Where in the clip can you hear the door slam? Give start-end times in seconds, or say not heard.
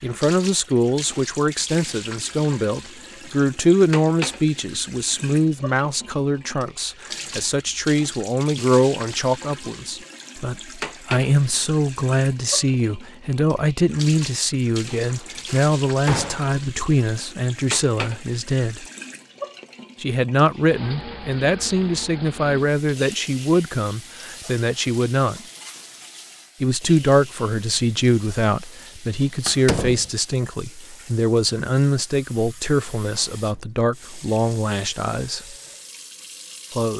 14.9-16.6, 29.4-30.1.